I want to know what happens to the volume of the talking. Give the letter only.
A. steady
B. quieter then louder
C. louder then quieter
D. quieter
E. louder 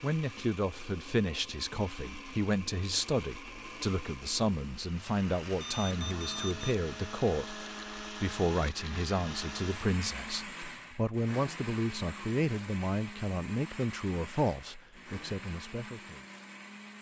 A.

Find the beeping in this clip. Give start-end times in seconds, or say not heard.
5.5-6.8.